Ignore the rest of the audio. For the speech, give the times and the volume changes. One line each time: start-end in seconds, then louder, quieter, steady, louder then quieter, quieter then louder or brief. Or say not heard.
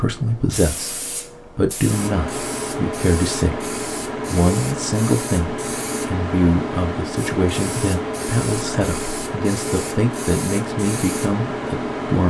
0.0-12.2 steady.